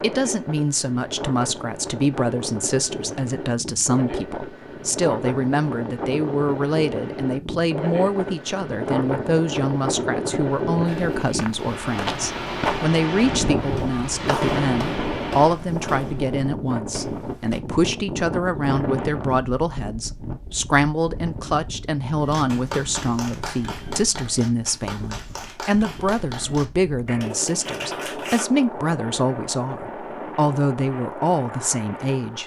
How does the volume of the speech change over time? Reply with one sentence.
The loudness of the speech stays about the same.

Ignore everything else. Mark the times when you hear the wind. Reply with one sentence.
The wind can be heard from 0.0 to 32.4 s.